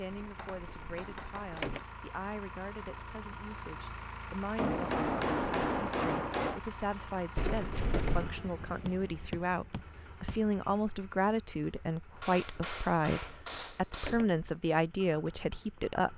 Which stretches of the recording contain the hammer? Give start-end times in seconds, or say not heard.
0.3-1.9, 4.5-6.6, 8.8-10.5, 12.2-14.2.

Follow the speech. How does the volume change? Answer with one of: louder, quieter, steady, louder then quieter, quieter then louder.
louder.